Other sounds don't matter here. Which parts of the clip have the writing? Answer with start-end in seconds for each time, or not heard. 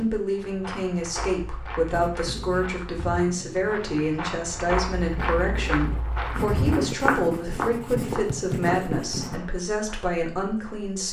1.9-9.4.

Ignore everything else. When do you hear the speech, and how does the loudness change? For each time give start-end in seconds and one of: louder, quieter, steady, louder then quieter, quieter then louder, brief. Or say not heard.
0.0-11.0 steady.